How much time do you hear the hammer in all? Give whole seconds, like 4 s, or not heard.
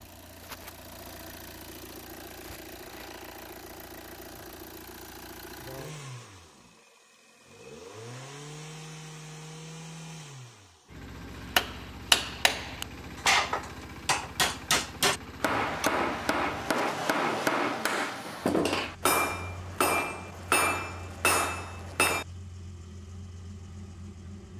11 s.